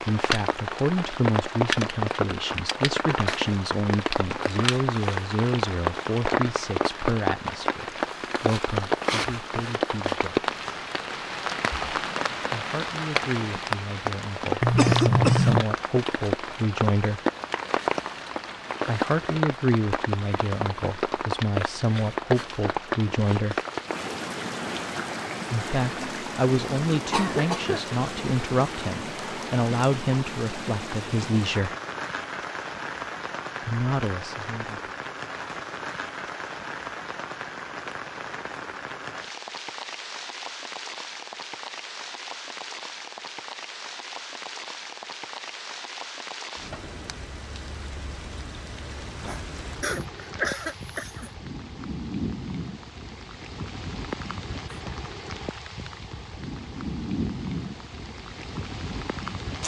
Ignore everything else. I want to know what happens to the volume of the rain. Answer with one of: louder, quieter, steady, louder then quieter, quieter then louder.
quieter.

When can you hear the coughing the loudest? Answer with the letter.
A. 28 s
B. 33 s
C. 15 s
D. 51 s
C.